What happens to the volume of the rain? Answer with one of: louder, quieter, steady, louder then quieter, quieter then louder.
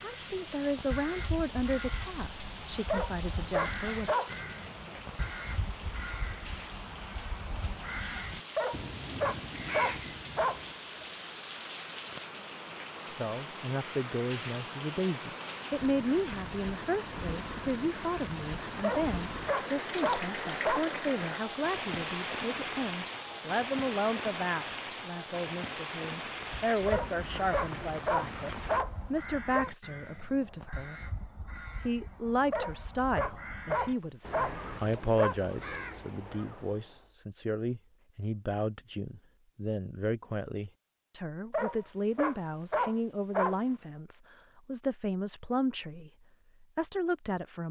louder.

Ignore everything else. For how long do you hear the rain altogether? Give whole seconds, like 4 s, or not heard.
29 s.